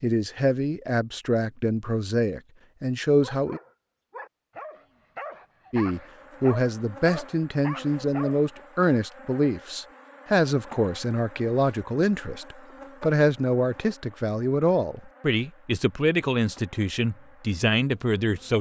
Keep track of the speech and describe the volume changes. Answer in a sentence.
The volume of the speech stays about the same.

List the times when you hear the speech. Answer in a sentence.
The speech can be heard from 0.0 to 3.6 s and from 5.7 to 18.5 s.